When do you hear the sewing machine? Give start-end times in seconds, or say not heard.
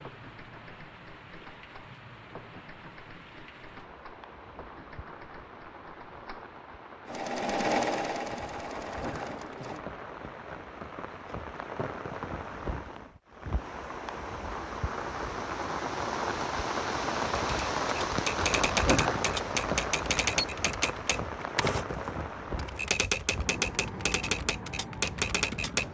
7.0-9.8.